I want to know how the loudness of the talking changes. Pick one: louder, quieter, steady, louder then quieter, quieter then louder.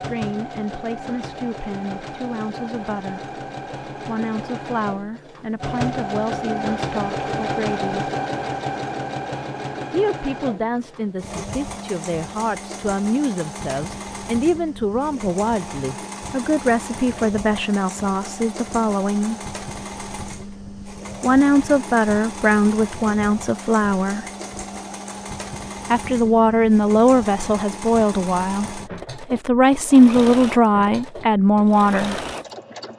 louder.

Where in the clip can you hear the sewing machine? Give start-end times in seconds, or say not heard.
0.0-32.9.